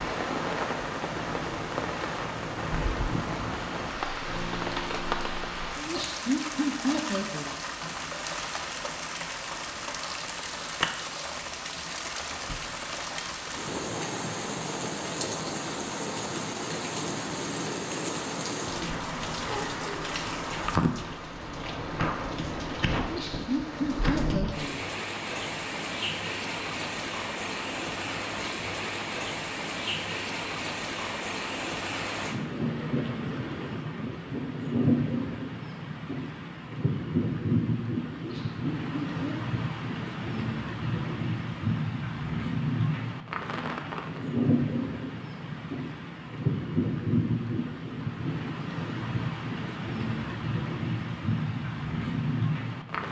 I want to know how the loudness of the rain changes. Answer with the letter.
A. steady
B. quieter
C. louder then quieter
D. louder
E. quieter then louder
A.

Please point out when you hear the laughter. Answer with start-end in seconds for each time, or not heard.
5.8-7.5, 22.9-24.9, 38.1-39.4.